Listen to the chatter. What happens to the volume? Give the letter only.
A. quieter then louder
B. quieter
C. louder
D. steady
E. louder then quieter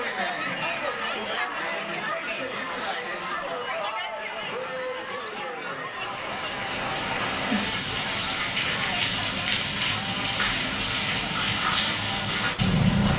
B.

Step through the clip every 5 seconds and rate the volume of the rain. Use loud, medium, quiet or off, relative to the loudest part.
off, loud, loud.